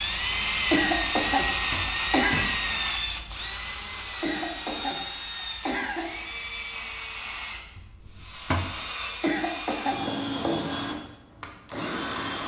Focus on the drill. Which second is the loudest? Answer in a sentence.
The volume of the drill peaks at 1 second.